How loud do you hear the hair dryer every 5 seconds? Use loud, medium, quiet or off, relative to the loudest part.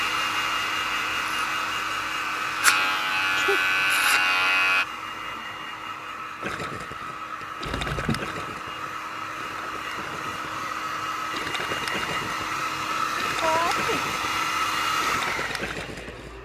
loud, medium, loud, loud.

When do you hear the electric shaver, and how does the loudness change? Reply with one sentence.
You can hear the electric shaver from 0.2 to 4.8 s, getting louder.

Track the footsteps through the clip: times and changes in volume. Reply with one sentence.
You can't hear the footsteps here.